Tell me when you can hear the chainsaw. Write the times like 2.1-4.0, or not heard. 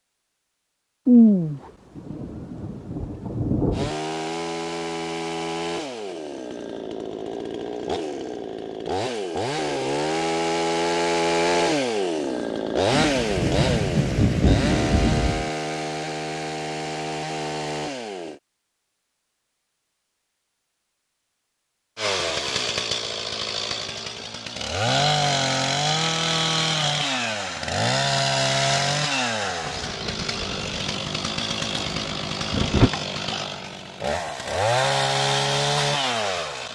3.7-18.4, 21.9-36.7.